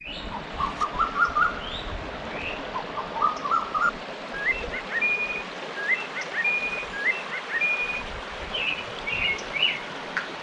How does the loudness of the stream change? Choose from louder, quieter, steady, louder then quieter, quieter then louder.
steady.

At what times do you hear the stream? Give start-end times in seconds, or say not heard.
0.1-10.3.